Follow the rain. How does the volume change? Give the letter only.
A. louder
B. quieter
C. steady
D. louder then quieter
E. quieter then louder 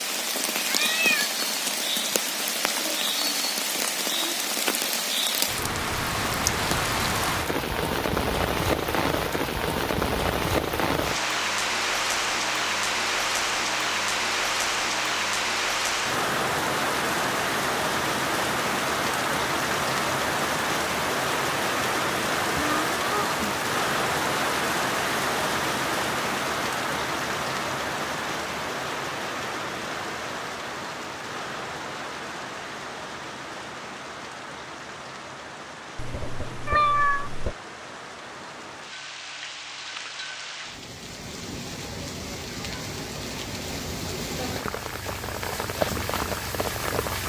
B.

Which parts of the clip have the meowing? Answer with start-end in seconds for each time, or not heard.
0.7-1.3, 22.6-23.4, 36.0-37.5.